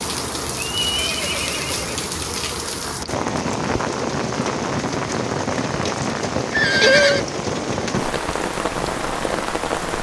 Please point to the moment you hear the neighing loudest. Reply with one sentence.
The loudest moment of the neighing is at 7 seconds.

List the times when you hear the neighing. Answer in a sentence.
You can hear the neighing from 0.7 to 2.1 s and from 6.5 to 7.2 s.